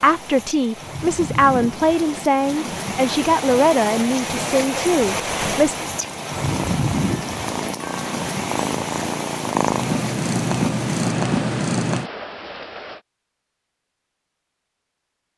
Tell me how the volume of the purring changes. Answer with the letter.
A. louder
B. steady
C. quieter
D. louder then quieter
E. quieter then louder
A.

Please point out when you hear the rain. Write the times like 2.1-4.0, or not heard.
0.0-13.0.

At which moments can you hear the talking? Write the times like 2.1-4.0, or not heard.
0.0-5.8.